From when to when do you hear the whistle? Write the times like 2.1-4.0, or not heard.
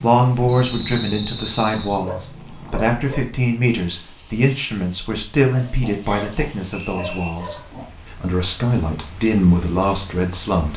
0.5-1.9, 6.0-7.3.